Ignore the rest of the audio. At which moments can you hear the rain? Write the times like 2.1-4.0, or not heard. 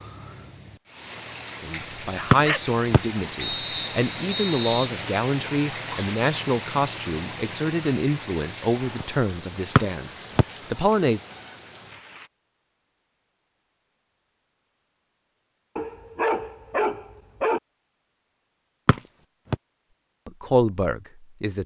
0.0-12.3.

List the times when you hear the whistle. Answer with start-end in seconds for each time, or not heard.
2.3-4.9, 9.8-10.4, 18.9-19.6.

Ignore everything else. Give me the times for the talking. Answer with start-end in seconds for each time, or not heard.
1.6-11.2, 20.2-21.6.